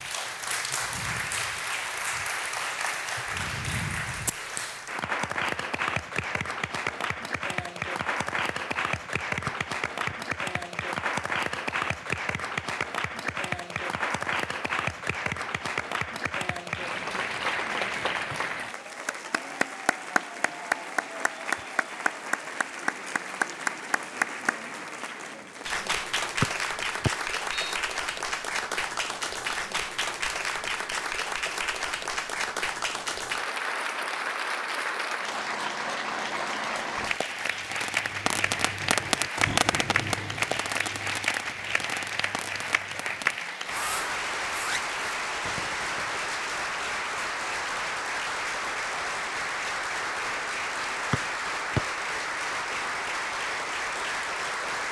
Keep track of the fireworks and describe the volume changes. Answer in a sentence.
The volume of the fireworks goes down.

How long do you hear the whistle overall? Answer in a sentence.
The whistle can be heard for 3 seconds in total.